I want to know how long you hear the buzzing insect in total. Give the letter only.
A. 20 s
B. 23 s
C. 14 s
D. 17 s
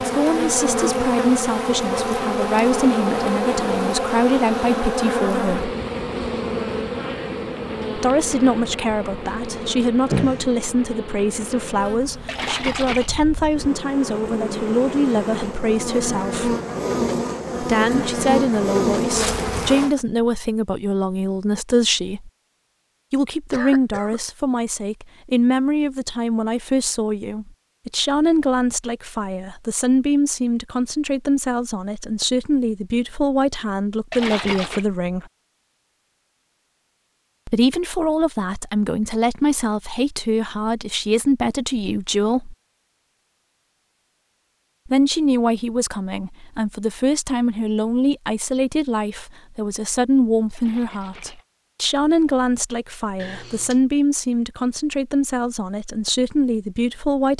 A.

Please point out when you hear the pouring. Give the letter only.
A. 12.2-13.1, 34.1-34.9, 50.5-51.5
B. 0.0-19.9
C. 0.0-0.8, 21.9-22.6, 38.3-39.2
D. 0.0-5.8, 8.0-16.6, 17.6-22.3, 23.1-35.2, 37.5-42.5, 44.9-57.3
A.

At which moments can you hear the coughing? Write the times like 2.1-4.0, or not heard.
10.1-10.7, 23.5-24.2, 53.1-53.8.